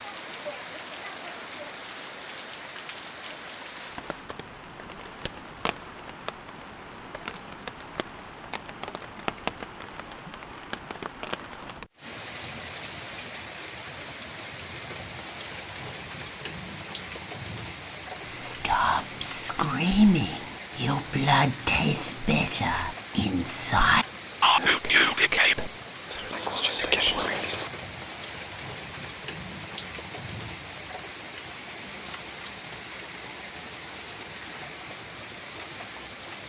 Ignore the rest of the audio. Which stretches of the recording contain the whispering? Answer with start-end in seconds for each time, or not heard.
18.2-27.7.